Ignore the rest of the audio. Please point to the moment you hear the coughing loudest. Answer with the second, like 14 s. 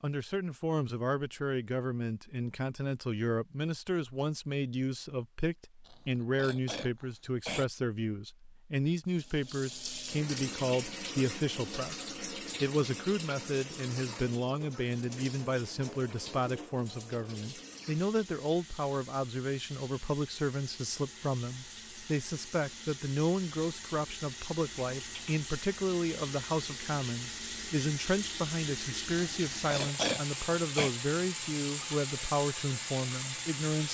30 s.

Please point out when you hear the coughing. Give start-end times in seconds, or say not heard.
5.8-7.7, 29.1-30.9.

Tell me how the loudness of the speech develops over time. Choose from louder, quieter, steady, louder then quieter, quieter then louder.
steady.